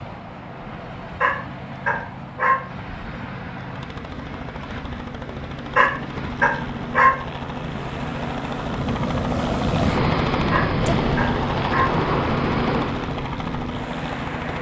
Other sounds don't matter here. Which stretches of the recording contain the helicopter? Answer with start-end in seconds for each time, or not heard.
0.0-14.5.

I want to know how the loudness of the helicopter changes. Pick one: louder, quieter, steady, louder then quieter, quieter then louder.
louder.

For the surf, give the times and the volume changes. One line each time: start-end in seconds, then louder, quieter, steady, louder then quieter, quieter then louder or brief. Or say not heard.
0.0-14.5 louder.